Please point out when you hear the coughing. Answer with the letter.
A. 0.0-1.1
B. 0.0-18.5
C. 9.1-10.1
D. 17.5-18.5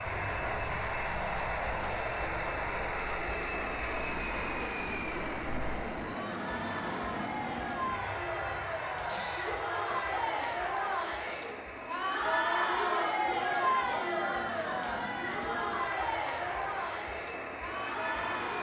C.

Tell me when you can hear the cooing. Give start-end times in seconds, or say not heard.
not heard.